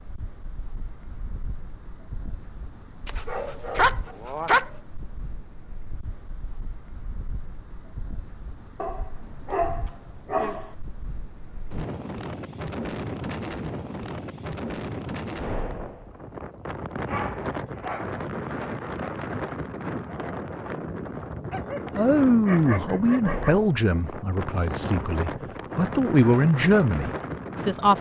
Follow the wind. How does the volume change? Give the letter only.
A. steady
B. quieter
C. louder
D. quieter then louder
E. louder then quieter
C.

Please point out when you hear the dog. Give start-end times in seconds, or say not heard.
3.0-4.7, 8.8-10.8, 17.1-18.2, 21.5-23.5.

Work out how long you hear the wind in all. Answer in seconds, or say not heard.
28 s.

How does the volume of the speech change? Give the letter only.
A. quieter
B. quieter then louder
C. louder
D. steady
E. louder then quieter
B.